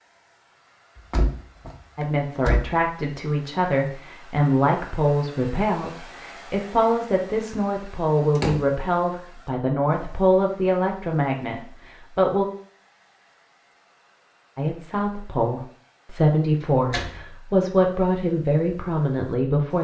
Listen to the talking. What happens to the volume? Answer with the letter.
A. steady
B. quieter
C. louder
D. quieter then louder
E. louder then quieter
A.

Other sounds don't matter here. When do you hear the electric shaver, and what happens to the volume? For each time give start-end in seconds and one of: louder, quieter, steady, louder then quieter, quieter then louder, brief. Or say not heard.
not heard.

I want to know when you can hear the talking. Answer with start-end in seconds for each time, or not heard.
1.9-12.4, 14.6-19.7.